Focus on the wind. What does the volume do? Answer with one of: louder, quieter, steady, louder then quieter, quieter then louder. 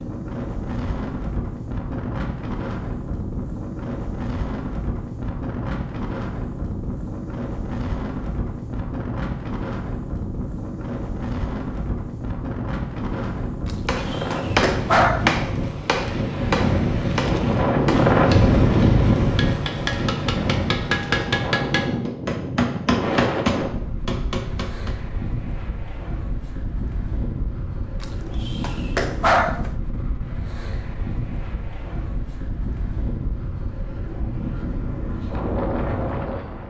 louder then quieter.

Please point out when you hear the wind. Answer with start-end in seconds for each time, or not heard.
0.0-36.6.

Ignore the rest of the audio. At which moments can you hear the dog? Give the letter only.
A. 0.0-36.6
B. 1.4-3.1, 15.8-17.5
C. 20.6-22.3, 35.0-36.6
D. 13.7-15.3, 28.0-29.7
D.